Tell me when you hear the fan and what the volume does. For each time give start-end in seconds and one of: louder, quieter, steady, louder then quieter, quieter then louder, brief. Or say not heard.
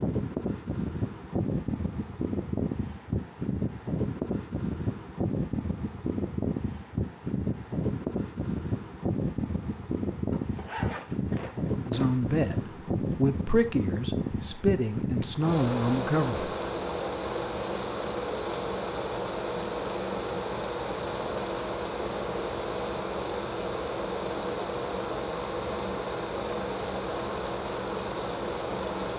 0.0-29.1 steady.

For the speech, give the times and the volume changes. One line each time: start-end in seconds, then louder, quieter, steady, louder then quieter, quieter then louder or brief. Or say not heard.
11.8-16.5 quieter then louder.